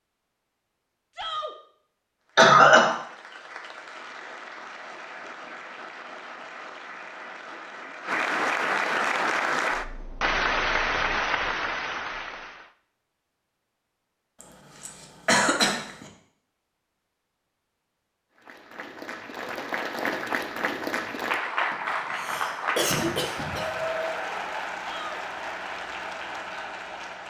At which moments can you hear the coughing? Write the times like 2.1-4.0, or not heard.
2.4-3.0, 14.4-16.1, 21.7-23.8.